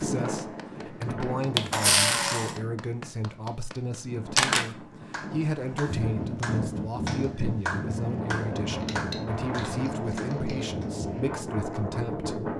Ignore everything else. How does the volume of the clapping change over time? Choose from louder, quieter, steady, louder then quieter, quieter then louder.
louder then quieter.